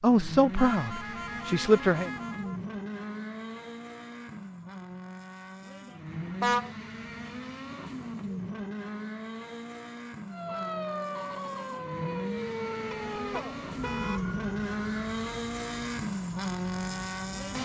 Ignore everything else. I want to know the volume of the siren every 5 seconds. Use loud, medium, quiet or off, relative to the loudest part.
off, off, loud, medium.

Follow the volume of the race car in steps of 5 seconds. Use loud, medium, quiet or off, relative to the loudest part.
medium, medium, loud, loud.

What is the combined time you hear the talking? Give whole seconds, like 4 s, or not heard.
2 s.